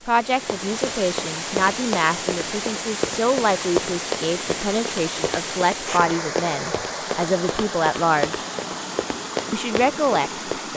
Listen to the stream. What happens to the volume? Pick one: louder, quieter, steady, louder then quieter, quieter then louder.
steady.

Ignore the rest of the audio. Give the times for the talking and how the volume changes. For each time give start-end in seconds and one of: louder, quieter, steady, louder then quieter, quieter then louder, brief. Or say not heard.
0.1-8.4 steady
9.5-10.7 brief.